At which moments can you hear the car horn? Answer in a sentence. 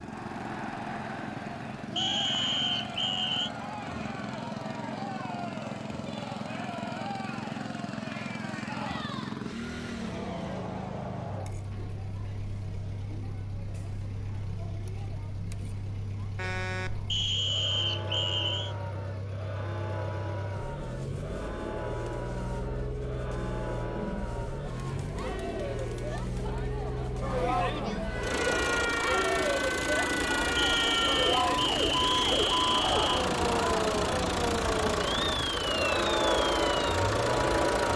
The car horn can be heard from 16.4 to 17.0 s and from 25.6 to 26.2 s.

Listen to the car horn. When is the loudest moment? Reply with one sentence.
The loudest moment of the car horn is at 17 seconds.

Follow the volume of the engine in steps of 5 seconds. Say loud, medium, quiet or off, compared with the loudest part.
medium, medium, medium, medium, medium, loud, loud, loud.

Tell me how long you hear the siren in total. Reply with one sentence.
You can hear the siren for 10 seconds altogether.